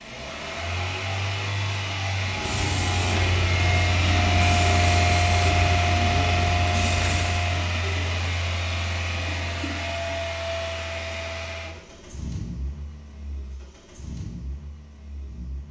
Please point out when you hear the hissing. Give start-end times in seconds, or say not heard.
2.2-7.5.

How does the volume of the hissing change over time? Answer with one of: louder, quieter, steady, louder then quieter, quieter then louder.
steady.